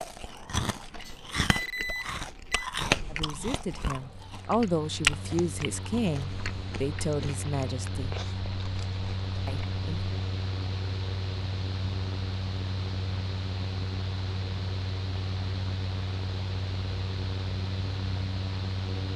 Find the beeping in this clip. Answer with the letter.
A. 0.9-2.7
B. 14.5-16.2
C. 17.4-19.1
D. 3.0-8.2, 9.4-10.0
A.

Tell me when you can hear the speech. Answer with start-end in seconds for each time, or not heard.
3.0-8.2, 9.4-10.0.